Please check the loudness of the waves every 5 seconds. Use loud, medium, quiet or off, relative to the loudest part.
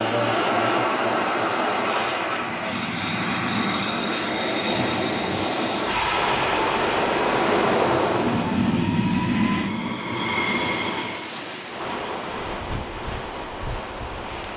medium, loud, medium.